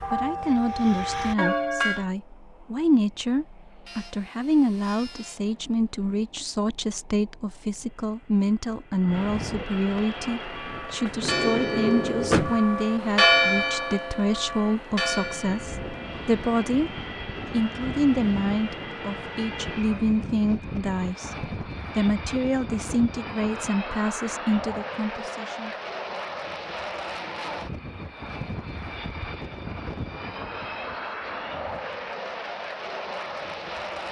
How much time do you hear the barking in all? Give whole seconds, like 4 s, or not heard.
not heard.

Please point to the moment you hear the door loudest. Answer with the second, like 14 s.
12 s.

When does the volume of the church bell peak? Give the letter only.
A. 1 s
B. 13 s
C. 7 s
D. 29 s
B.